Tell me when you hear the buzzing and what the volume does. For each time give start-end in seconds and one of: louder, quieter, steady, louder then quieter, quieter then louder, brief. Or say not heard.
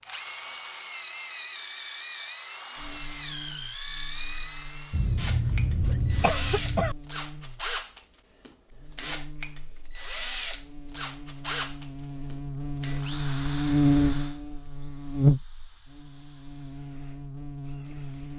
2.8-18.3 louder.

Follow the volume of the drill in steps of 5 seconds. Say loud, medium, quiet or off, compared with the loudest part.
loud, loud, loud, quiet.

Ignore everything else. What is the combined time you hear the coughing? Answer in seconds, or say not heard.
2 s.